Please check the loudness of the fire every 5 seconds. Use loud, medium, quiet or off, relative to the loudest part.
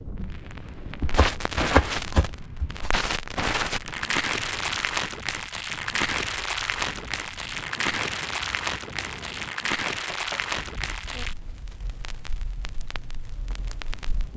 loud, loud, medium.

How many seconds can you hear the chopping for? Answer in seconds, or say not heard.
3 s.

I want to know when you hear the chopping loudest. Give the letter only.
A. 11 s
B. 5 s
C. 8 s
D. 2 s
D.